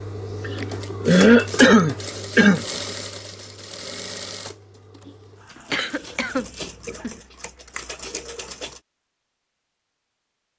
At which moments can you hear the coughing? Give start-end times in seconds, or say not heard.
0.5-2.6, 5.7-7.2.